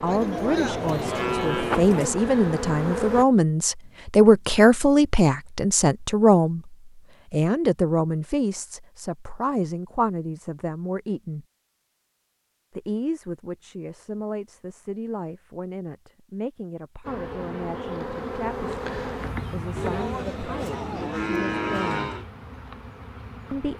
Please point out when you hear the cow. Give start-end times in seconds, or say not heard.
0.1-2.1, 19.8-22.2.